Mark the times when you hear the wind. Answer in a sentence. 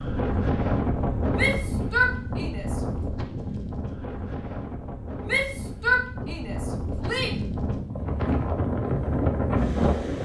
The wind can be heard from 0.0 to 10.2 s.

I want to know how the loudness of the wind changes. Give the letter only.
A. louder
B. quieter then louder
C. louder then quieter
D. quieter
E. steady
B.